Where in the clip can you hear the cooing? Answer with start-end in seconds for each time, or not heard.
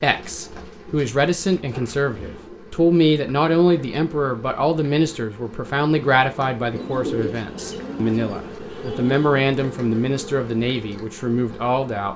0.1-2.6, 6.8-9.2.